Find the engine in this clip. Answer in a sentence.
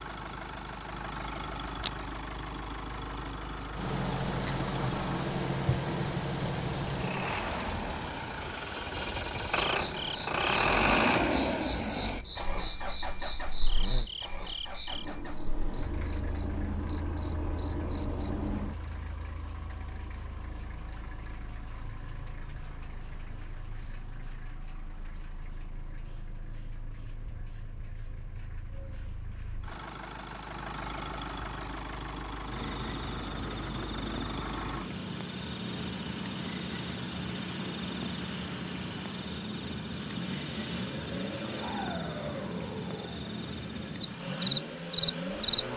You can hear the engine from 0.0 to 45.7 s.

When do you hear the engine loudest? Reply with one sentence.
The loudest moment of the engine is at 11 seconds.